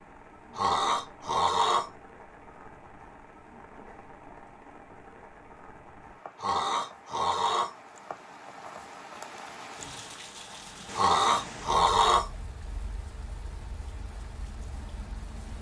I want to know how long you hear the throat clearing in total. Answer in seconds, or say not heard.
4 s.